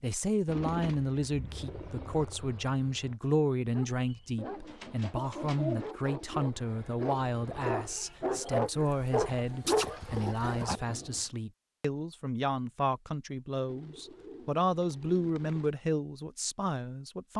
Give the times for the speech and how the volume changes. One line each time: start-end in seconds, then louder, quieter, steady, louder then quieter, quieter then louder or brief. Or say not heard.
0.0-17.3 steady.